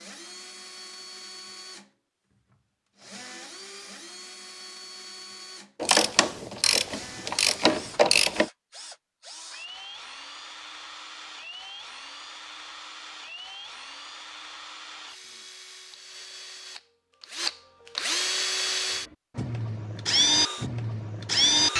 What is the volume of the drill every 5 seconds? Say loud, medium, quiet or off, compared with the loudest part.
quiet, quiet, quiet, medium, loud.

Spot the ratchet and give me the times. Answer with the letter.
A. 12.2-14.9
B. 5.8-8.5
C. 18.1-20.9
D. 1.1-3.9
B.